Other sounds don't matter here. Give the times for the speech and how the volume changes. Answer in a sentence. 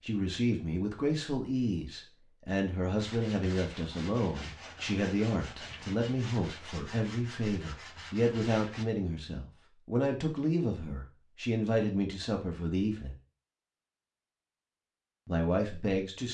The speech can be heard from 0.0 to 13.2 s, at a steady volume; and briefly from 15.2 to 16.2 s.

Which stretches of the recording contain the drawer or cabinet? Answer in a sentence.
The drawer or cabinet can't be heard in this clip.